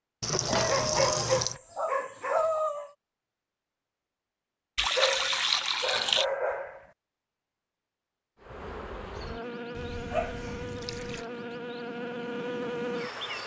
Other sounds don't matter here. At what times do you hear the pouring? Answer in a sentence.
The pouring can be heard from 0.2 to 1.6 s, from 4.8 to 6.2 s and from 9.7 to 11.2 s.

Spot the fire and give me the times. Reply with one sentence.
You can't hear the fire here.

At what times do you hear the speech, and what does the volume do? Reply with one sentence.
You can't hear the speech here.